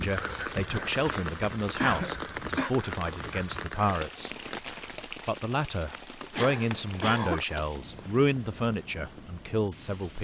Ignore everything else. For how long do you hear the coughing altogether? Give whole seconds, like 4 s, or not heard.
2 s.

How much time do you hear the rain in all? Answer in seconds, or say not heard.
10 s.